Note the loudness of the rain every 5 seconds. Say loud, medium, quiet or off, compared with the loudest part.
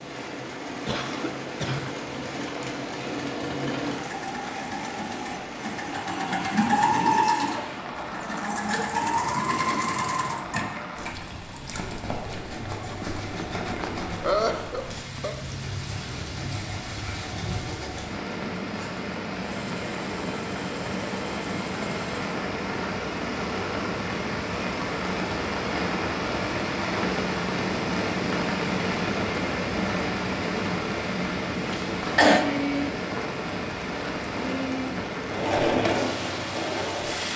medium, medium, medium, medium, loud, loud, loud, medium.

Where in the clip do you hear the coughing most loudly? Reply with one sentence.
The loudest moment of the coughing is at 32 seconds.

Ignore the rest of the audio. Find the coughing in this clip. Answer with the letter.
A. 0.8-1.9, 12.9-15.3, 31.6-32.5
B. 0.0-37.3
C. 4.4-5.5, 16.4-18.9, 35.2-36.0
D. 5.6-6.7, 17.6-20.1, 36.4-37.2
A.